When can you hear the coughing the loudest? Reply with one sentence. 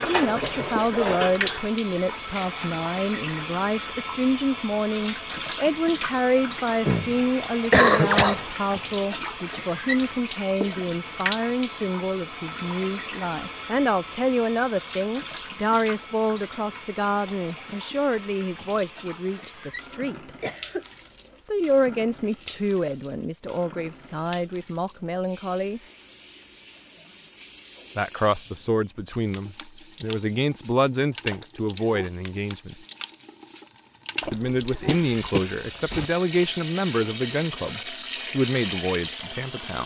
The volume of the coughing peaks at 8 seconds.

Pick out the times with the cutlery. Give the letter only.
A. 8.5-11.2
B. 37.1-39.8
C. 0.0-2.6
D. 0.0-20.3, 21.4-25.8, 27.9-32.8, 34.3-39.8
C.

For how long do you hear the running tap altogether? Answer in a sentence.
The running tap can be heard for 40 seconds in total.